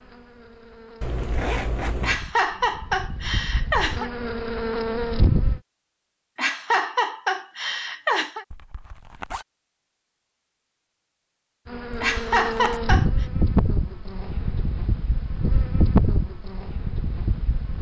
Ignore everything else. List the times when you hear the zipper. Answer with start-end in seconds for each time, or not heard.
1.0-2.2, 8.5-9.4, 11.9-12.8.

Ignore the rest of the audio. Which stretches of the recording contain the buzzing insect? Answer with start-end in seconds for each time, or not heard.
0.0-5.6, 11.7-17.7.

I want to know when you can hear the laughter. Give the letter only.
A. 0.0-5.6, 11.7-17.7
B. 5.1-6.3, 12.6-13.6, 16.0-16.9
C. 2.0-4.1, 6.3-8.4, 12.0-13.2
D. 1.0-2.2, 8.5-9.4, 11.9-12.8
C.